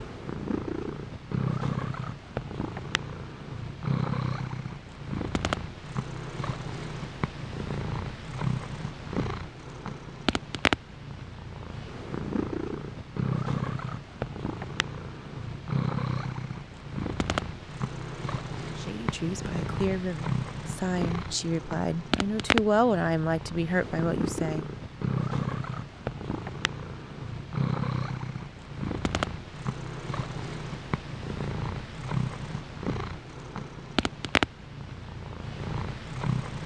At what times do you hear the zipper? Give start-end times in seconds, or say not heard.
not heard.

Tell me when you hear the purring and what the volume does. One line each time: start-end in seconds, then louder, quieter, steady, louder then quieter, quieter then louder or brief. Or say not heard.
0.0-36.6 steady.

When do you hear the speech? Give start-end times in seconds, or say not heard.
18.8-24.7.